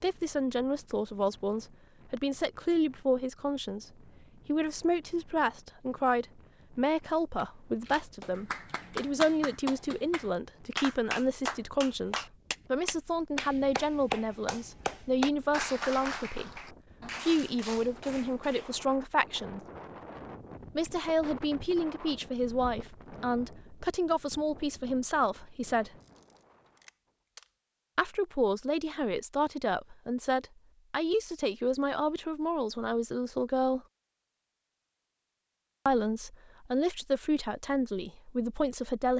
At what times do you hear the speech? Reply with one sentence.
The speech can be heard from 0.0 to 3.9 s, from 4.5 to 19.6 s, from 20.8 to 25.9 s, from 27.9 to 33.8 s and from 35.9 to 39.1 s.